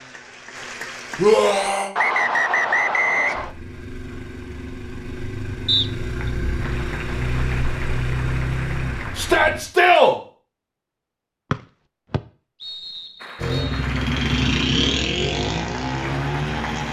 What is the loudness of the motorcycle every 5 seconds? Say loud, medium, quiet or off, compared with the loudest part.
quiet, medium, loud, loud.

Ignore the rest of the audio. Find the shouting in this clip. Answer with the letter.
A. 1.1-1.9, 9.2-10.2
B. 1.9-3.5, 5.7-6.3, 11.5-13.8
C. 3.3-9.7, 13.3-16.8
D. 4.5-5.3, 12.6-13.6
A.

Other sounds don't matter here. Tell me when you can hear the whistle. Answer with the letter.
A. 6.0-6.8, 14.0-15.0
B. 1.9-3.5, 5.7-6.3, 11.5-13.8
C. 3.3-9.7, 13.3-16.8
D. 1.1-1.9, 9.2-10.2
B.